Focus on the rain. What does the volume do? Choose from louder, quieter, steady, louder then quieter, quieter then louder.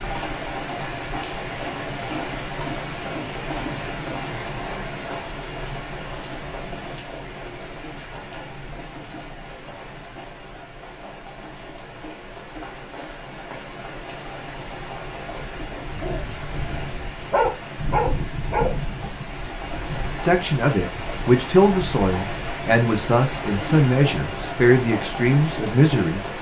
quieter then louder.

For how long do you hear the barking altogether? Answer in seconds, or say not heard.
3 s.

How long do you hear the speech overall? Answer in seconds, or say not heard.
6 s.